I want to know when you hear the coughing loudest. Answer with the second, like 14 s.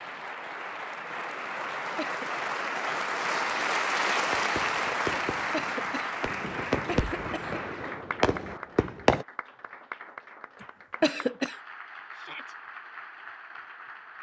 11 s.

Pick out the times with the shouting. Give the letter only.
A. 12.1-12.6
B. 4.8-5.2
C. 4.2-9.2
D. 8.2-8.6
A.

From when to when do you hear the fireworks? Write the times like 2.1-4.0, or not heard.
4.2-9.2.